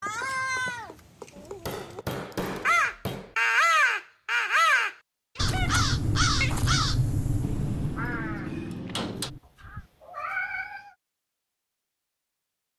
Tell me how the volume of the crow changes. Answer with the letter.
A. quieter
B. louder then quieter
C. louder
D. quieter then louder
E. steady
A.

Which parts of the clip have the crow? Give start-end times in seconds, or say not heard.
2.6-9.9.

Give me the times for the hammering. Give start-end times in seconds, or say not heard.
1.4-3.4, 7.4-9.3.